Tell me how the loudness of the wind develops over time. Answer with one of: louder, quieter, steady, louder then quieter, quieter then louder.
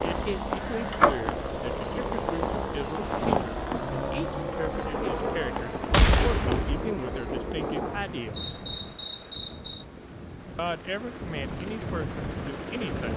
quieter then louder.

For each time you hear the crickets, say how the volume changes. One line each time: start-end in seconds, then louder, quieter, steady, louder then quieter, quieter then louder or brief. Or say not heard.
0.0-13.1 quieter.